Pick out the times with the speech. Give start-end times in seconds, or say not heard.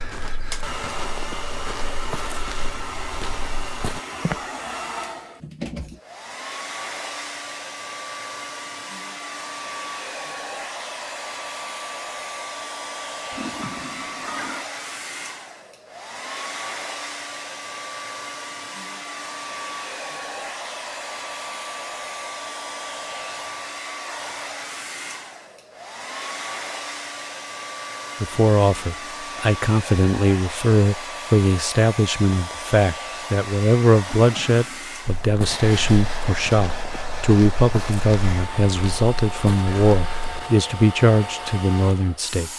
28.2-42.5.